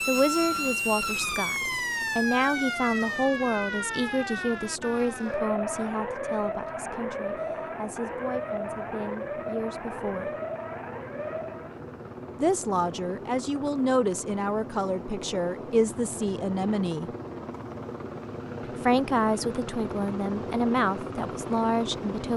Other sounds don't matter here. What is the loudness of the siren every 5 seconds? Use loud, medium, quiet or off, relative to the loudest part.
loud, loud, medium, off, off.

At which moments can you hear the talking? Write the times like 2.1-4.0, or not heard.
0.1-10.3, 12.3-17.1, 18.8-22.3.